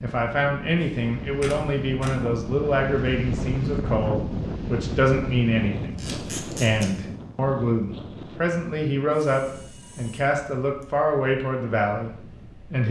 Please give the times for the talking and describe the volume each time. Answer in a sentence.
The talking can be heard from 0.0 to 12.8 s, at a steady volume.